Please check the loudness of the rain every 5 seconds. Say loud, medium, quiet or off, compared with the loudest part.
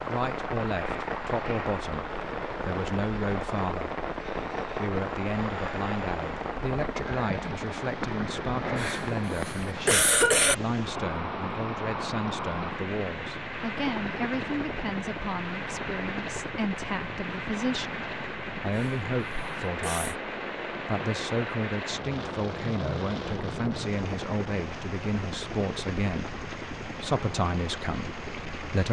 loud, loud, loud, loud, loud, medium.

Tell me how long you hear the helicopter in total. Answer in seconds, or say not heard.
29 s.